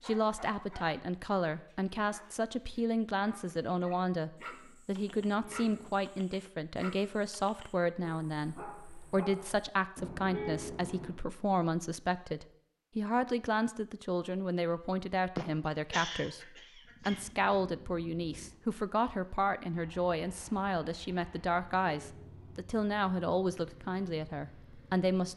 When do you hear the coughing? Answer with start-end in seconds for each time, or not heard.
15.3-17.2.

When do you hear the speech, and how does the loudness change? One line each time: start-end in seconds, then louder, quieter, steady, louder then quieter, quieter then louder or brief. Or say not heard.
0.0-25.3 steady.